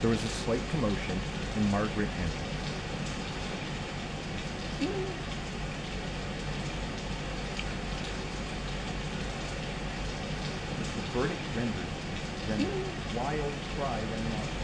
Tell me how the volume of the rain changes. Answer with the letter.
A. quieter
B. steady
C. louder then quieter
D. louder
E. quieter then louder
B.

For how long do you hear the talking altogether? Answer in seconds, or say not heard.
6 s.